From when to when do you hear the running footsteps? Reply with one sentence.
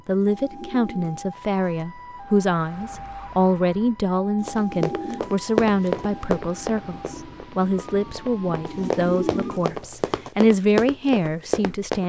You can hear the running footsteps from 4.5 to 12.0 s.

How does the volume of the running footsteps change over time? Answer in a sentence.
The loudness of the running footsteps goes down, then up.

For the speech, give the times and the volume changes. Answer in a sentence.
You can hear the speech from 0.1 to 12.0 s, at a steady volume.